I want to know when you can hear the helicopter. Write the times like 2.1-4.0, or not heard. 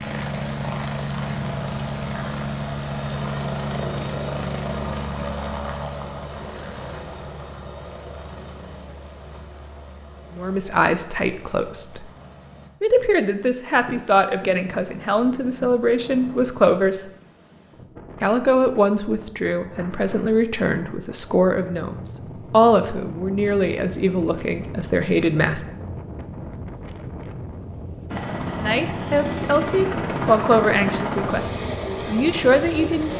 0.0-12.7, 28.1-33.1.